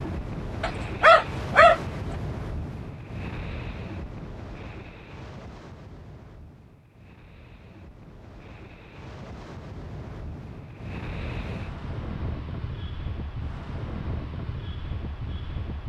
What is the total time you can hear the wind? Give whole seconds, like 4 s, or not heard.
16 s.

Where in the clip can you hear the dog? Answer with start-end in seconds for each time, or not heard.
0.6-1.8.